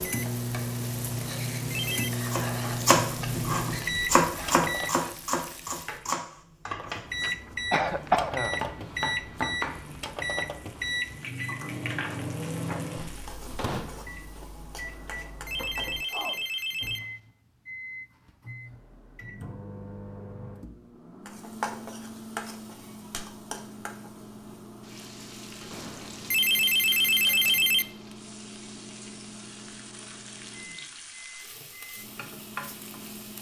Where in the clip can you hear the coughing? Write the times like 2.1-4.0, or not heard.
6.8-8.6.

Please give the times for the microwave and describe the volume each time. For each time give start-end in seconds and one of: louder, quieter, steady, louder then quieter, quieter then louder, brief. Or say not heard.
0.0-5.0 steady
6.8-33.3 quieter.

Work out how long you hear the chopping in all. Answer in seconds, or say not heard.
8 s.